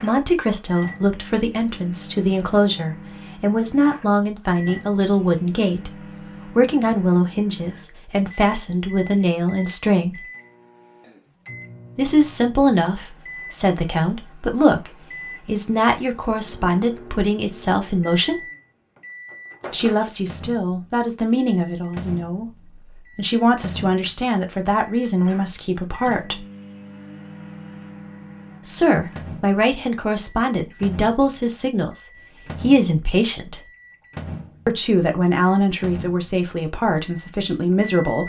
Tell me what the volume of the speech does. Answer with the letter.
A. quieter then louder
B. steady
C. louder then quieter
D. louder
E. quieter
B.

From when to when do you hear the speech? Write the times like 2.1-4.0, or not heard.
0.0-5.9, 6.5-10.2, 11.9-18.4, 19.7-26.4, 28.6-33.6, 34.6-38.2.